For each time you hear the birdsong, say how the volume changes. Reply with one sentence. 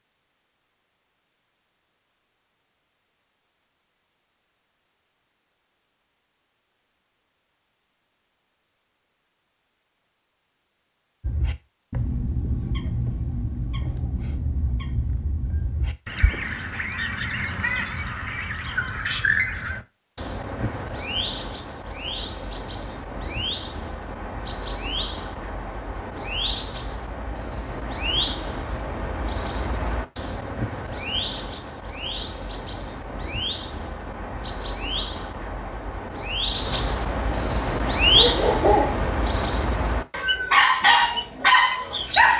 You can hear the birdsong from 11.2 to 42.3 s, getting louder.